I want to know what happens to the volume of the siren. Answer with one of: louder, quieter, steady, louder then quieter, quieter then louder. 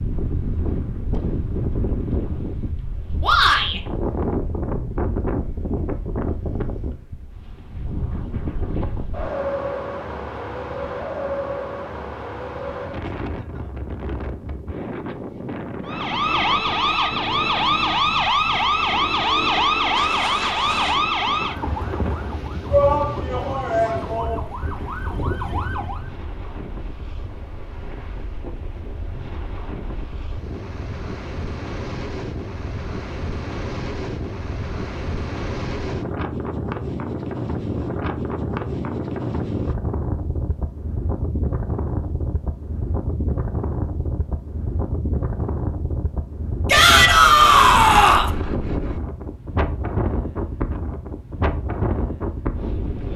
quieter.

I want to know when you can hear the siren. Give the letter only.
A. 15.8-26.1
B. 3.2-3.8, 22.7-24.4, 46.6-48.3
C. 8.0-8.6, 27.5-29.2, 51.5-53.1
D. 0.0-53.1
A.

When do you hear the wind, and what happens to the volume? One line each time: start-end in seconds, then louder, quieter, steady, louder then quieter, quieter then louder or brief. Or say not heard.
0.0-53.1 quieter then louder.